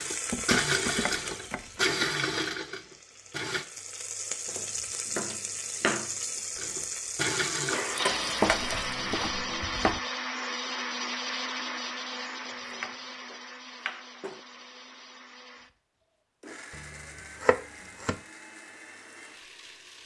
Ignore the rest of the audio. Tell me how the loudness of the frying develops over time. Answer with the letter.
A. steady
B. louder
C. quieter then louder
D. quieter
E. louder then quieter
C.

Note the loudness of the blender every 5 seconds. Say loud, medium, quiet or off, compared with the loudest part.
loud, loud, medium, quiet.